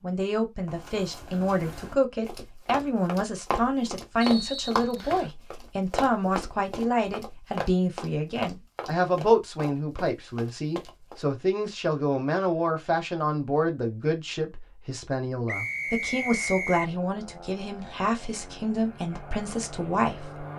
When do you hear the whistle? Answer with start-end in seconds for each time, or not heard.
4.2-5.3, 15.4-16.9.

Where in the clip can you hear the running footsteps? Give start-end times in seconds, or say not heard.
0.7-11.2.